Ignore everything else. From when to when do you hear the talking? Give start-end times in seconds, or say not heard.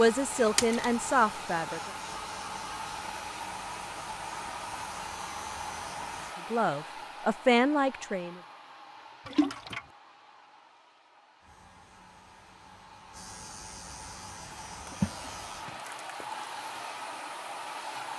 0.0-1.9, 6.5-8.4.